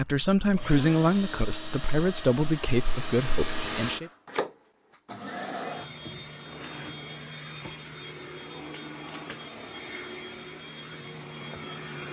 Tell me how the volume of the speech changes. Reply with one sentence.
The loudness of the speech goes down.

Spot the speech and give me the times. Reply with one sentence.
You can hear the speech from 0.0 to 4.1 s.